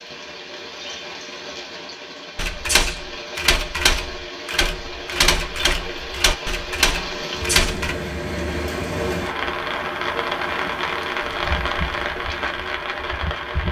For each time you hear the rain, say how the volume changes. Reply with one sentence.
The rain can be heard from 0.0 to 13.6 s, getting louder.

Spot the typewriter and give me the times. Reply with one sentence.
You can hear the typewriter from 2.4 to 8.0 s.